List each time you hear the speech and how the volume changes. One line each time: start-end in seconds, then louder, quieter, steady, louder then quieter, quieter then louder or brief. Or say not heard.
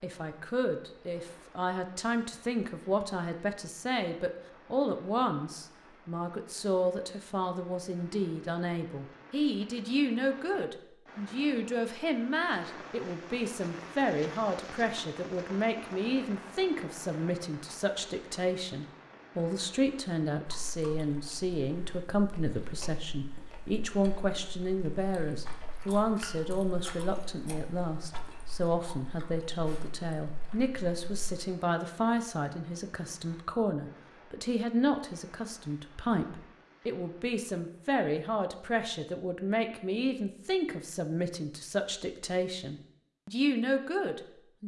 0.0-44.6 steady.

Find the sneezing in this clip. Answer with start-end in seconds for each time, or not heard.
not heard.